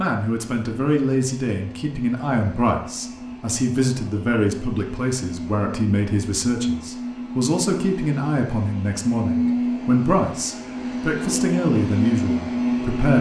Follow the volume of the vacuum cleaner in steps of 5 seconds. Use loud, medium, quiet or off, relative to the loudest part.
quiet, loud, loud.